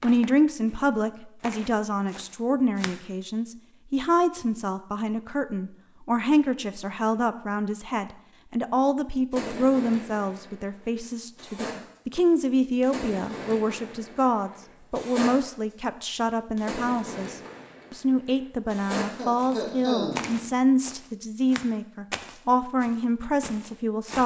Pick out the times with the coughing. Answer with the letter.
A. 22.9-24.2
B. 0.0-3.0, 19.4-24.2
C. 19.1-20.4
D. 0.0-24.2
C.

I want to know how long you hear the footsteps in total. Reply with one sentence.
You can hear the footsteps for 8 seconds altogether.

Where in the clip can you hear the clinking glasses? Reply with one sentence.
You can't hear the clinking glasses here.